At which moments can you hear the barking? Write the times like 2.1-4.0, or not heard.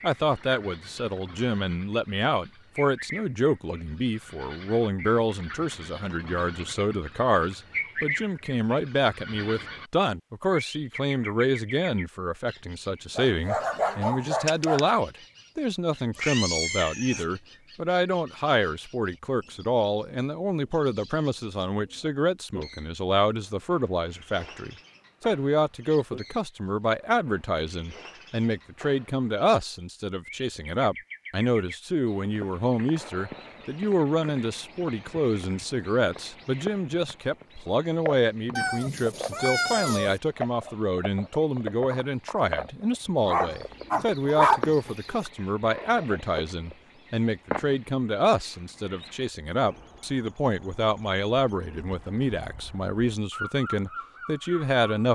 13.2-14.8, 43.2-45.3.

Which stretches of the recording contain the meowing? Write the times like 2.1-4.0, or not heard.
16.1-17.2, 38.5-40.2.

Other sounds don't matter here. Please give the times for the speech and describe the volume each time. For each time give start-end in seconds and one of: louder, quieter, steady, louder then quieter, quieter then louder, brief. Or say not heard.
0.0-55.0 steady.